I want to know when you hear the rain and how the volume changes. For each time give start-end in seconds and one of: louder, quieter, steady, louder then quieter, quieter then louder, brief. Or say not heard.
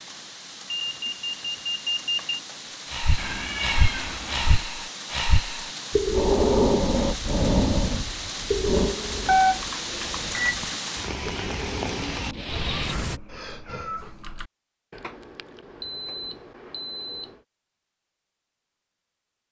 0.0-13.2 louder.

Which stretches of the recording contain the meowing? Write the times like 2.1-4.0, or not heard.
3.1-4.7, 12.5-14.5.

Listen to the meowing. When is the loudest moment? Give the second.
4 s.